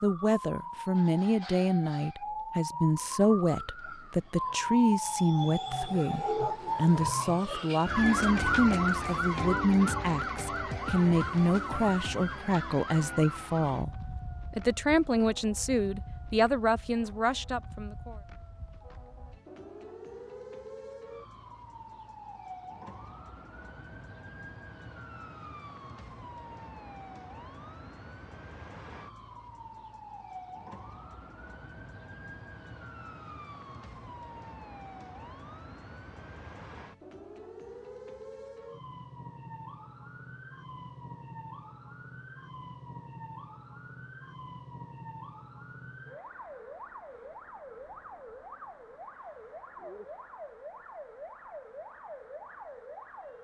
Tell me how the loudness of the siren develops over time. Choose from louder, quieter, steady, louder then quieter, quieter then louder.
quieter.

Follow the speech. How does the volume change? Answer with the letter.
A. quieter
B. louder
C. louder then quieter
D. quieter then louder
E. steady
E.